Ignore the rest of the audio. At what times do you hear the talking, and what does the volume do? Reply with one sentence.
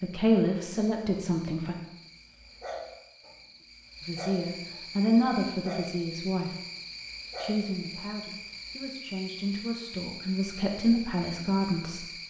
The talking can be heard briefly from 0.0 to 1.8 s; briefly from 4.0 to 6.5 s; and from 7.3 to 12.1 s, getting louder.